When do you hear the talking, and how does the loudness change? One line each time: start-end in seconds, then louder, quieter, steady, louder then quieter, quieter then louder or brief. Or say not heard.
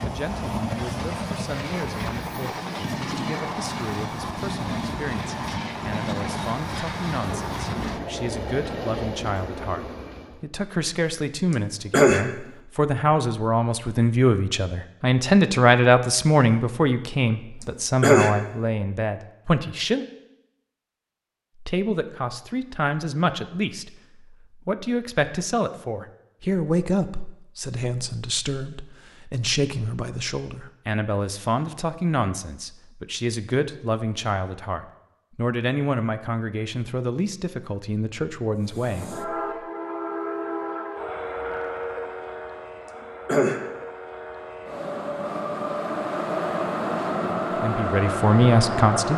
0.0-20.1 louder
21.6-39.2 steady
47.6-49.1 brief.